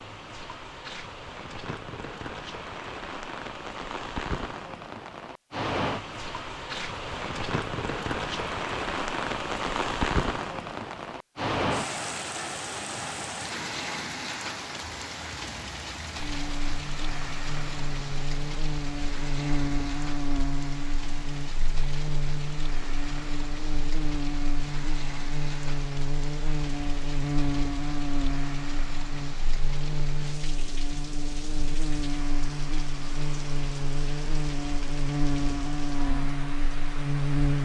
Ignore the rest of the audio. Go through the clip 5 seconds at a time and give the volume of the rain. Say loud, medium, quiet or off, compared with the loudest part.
medium, loud, loud, medium, medium, medium, medium, medium.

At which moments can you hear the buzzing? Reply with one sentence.
You can hear the buzzing from 16.1 to 37.6 s.